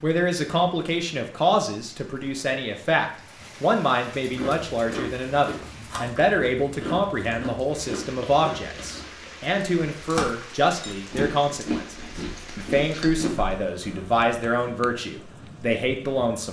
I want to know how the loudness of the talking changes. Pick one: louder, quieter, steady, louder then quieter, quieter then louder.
steady.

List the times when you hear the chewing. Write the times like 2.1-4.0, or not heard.
4.2-14.2.